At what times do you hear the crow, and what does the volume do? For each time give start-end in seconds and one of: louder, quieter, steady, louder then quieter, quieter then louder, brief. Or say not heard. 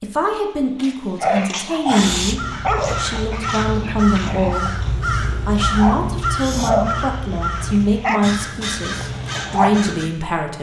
2.0-10.1 steady.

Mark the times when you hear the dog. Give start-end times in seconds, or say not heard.
0.8-9.7.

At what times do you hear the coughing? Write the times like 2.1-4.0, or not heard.
not heard.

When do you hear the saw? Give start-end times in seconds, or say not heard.
not heard.